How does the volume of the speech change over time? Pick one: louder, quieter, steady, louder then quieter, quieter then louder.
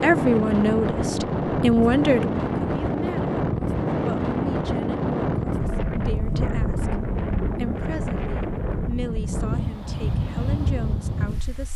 quieter.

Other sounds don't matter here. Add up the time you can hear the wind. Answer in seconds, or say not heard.
12 s.